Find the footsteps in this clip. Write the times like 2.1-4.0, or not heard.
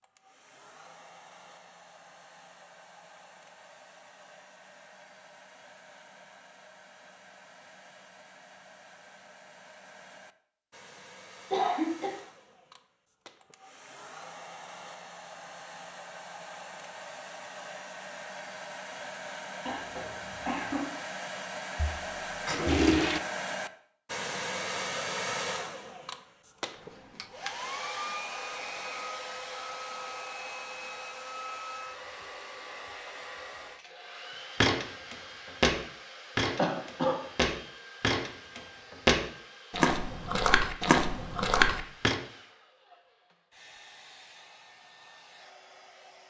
34.6-42.1.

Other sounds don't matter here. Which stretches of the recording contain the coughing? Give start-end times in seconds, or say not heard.
11.5-12.2, 19.6-20.9, 36.5-37.1.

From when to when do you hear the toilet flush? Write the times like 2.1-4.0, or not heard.
21.8-23.2.